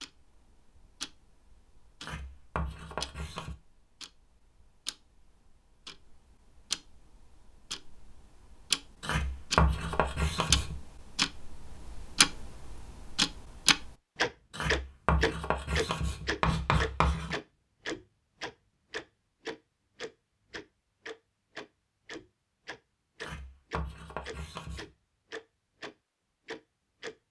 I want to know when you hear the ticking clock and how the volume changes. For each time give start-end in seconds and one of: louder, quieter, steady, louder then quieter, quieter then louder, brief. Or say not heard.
0.0-27.1 louder then quieter.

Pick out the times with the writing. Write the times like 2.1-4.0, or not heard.
2.0-3.5, 9.0-10.8, 14.5-17.4, 23.2-24.9.